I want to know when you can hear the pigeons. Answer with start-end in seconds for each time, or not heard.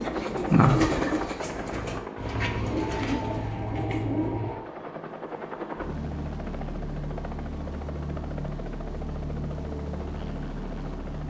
0.0-4.6.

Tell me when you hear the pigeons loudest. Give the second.
1 s.